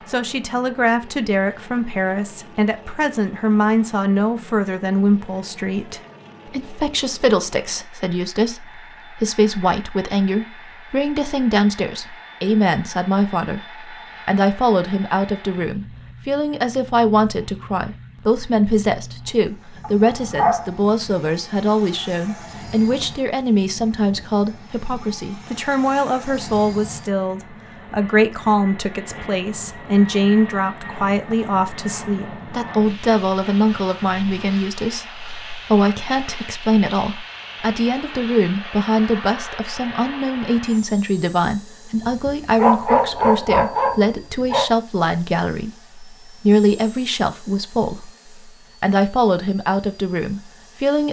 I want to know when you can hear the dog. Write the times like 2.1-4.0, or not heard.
19.8-20.7, 42.0-44.7.